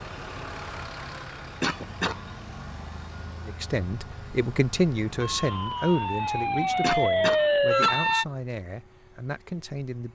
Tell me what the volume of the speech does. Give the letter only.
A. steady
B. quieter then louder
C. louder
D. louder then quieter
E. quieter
E.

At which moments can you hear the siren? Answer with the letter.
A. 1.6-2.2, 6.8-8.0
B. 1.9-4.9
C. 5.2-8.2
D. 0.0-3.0
C.